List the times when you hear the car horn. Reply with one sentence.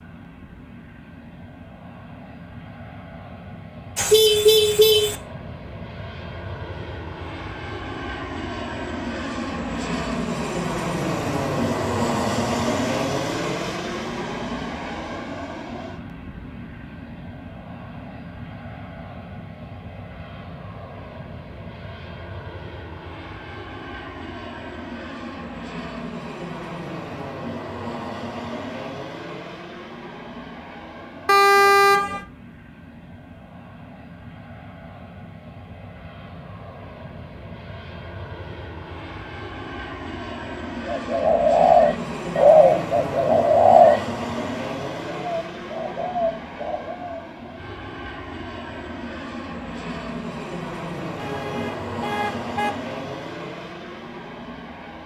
You can hear the car horn from 4.0 to 5.2 s, from 31.2 to 32.2 s and from 51.1 to 52.8 s.